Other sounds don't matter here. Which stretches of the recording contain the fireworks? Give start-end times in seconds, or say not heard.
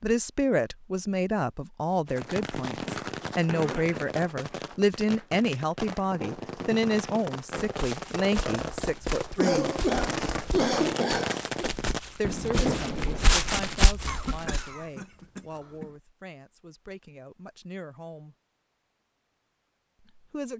2.0-13.4.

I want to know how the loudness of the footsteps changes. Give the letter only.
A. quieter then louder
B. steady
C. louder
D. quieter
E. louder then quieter
C.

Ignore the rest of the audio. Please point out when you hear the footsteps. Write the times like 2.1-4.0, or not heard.
7.7-14.8.